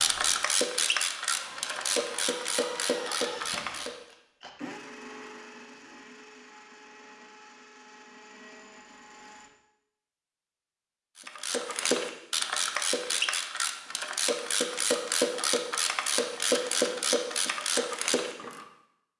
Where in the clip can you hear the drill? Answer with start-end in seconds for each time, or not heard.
0.0-9.5.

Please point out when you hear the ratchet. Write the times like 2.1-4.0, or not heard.
0.0-4.0, 11.2-18.6.